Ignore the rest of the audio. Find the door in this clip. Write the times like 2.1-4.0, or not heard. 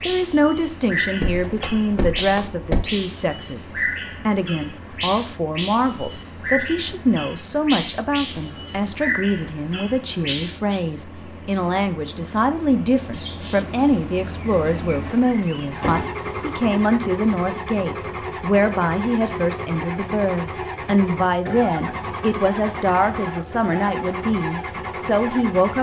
1.2-2.9, 15.1-16.3.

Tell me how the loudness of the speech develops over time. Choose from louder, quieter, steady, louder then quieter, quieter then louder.
steady.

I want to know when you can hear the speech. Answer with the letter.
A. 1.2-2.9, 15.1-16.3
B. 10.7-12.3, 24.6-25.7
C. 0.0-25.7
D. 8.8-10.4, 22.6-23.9
C.